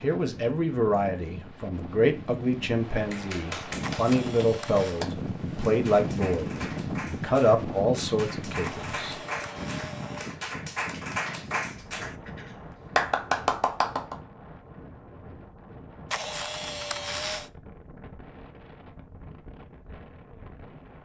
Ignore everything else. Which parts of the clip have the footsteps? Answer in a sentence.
The footsteps can't be heard in this clip.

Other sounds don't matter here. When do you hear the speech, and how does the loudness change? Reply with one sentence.
The speech can be heard from 0.0 to 9.2 s, at a steady volume.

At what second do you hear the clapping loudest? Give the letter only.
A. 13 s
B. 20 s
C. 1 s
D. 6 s
A.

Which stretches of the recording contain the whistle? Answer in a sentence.
You can't hear the whistle here.